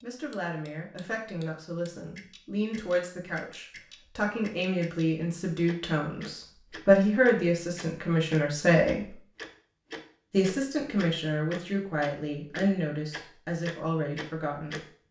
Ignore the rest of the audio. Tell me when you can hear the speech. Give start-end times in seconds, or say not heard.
0.0-9.1, 10.3-14.8.